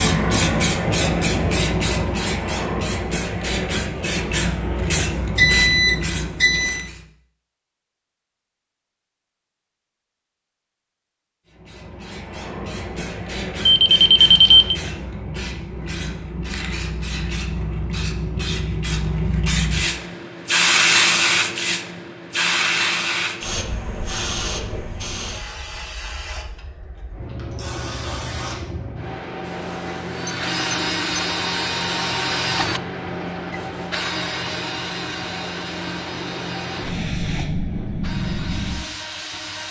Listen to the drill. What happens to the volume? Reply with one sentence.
The loudness of the drill goes down.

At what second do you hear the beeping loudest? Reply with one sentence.
The volume of the beeping peaks at 14 seconds.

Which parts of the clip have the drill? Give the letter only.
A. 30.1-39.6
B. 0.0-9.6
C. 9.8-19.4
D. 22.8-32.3
A.